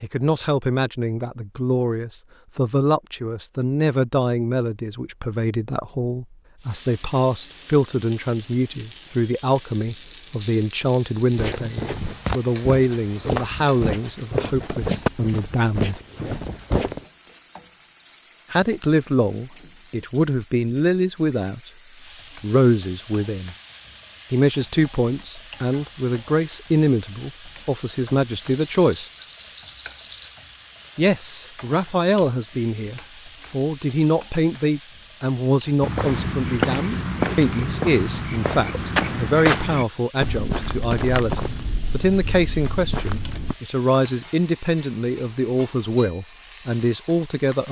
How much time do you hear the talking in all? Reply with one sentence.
The talking can be heard for 42 seconds in total.